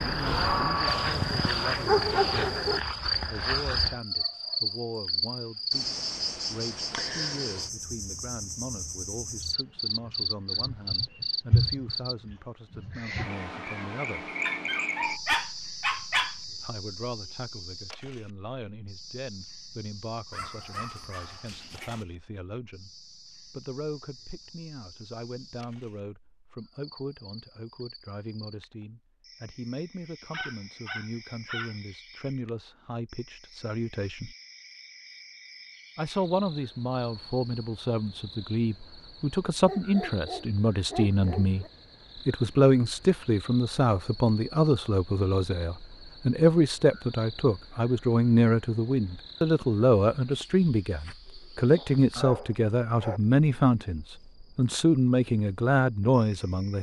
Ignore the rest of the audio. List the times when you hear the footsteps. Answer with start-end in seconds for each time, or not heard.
not heard.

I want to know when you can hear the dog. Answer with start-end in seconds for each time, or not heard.
0.8-2.8, 14.4-16.4, 20.3-22.1, 30.3-31.8, 39.6-41.7, 51.8-53.2.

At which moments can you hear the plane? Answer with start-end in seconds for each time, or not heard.
0.0-1.9.